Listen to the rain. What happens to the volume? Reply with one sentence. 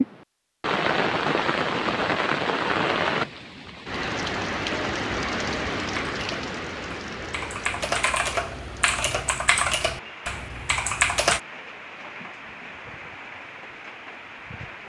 The volume of the rain goes down.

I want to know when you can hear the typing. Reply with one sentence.
You can hear the typing from 5.8 to 11.4 s.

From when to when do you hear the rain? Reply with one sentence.
You can hear the rain from 0.0 to 14.8 s.